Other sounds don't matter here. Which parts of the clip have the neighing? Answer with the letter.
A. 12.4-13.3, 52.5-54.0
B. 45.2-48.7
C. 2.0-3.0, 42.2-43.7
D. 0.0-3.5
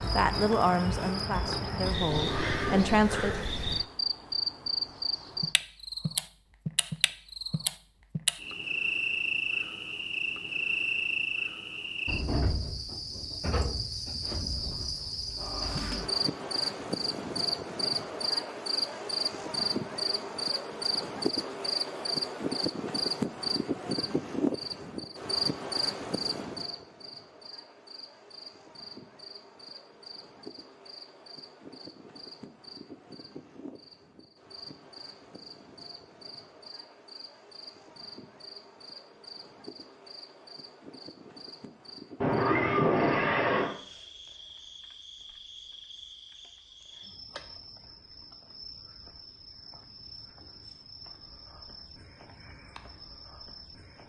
C.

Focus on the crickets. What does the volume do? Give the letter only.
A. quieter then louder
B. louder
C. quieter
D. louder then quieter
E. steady
C.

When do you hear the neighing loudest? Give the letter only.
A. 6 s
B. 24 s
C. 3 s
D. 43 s
D.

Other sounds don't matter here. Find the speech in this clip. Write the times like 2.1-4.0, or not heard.
0.0-3.5.